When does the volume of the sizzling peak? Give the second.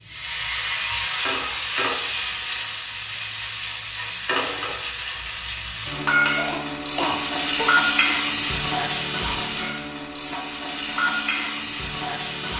8 s.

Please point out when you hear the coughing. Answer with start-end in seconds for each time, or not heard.
6.3-7.8.